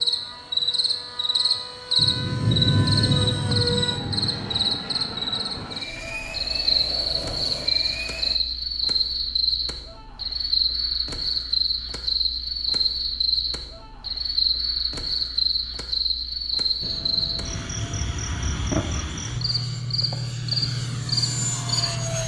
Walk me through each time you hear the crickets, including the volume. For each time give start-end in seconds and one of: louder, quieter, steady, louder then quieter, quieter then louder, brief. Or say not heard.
0.0-22.2 steady.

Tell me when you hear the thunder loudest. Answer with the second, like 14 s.
3 s.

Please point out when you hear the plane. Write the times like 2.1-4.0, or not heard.
0.0-8.4, 16.8-22.2.